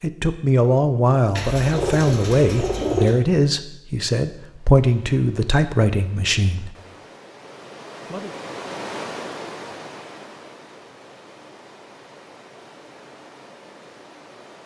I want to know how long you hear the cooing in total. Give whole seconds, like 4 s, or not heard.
2 s.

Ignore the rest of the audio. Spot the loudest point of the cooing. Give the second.
3 s.